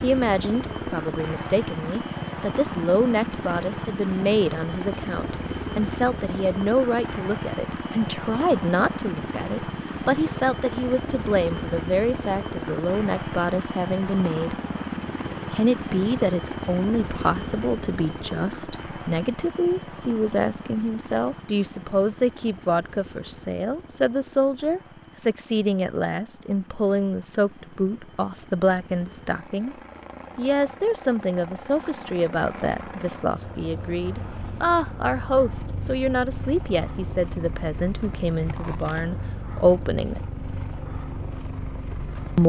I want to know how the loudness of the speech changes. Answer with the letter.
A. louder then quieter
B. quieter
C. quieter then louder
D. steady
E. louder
D.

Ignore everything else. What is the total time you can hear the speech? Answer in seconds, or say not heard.
39 s.